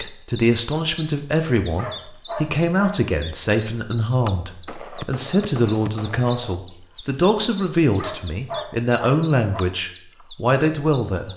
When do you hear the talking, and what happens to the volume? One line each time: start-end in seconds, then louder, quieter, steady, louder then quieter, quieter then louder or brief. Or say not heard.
0.0-11.3 steady.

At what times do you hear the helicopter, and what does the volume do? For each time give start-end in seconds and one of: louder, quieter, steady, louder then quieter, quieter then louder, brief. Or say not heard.
not heard.